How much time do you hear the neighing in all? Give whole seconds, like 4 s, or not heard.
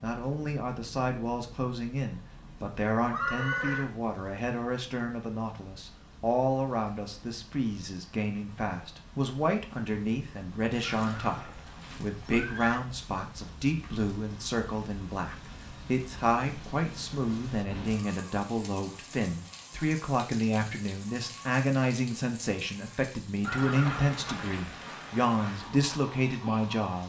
4 s.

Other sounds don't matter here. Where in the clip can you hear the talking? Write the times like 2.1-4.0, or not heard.
0.0-27.0.